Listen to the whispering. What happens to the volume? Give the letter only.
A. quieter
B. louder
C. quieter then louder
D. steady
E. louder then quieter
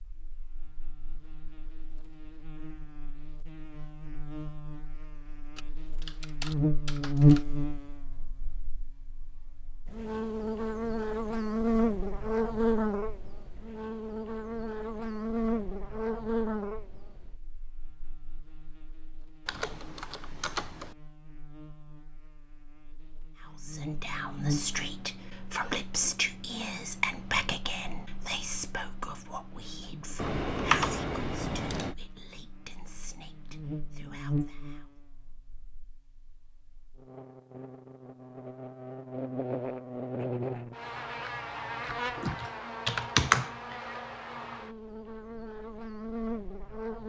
A.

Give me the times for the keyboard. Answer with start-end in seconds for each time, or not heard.
5.5-7.5, 19.4-20.9, 30.1-31.9, 41.9-43.8.